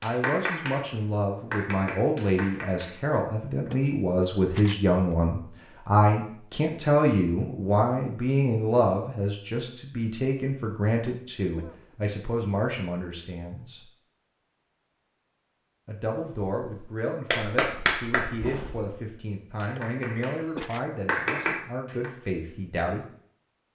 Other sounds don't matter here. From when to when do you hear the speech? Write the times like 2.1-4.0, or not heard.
0.0-13.8, 15.8-23.1.